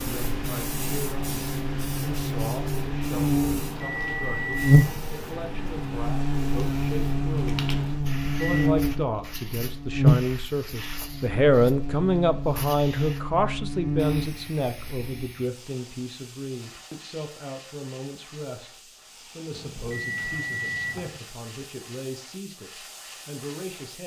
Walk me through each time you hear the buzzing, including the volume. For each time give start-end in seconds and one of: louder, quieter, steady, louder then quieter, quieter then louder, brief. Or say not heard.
0.0-15.3 louder then quieter.